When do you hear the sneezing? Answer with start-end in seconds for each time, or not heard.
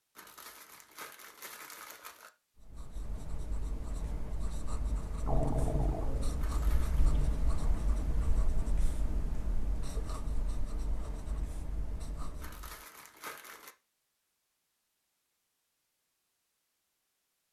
not heard.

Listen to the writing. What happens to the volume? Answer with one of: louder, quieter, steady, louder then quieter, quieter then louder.
louder then quieter.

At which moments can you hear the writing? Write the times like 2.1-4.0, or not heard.
2.5-12.8.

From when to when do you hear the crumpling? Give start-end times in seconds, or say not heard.
0.1-2.3, 6.3-7.1, 12.4-13.8.